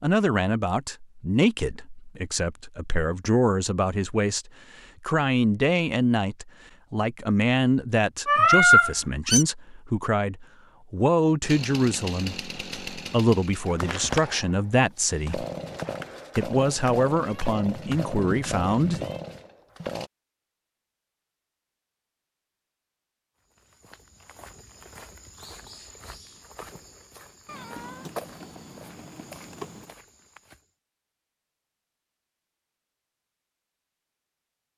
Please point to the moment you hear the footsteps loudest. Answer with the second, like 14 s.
28 s.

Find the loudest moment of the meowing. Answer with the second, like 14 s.
9 s.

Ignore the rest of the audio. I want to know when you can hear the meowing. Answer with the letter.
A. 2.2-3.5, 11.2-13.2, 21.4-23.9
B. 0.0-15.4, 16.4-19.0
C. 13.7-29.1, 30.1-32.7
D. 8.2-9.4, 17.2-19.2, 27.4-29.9
D.